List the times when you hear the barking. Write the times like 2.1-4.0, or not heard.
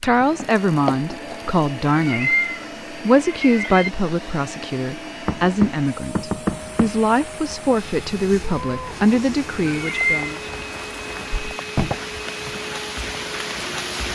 not heard.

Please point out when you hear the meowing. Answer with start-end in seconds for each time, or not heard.
1.9-3.9, 9.7-10.4.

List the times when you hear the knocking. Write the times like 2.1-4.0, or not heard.
0.2-1.4, 5.2-6.9, 11.3-11.9.